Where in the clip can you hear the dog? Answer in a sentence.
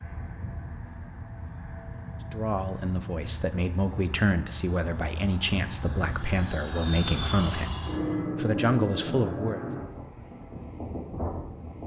The dog can't be heard in this clip.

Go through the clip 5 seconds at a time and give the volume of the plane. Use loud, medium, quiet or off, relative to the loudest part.
medium, loud, medium.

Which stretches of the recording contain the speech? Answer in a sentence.
The speech can be heard from 2.3 to 9.8 s.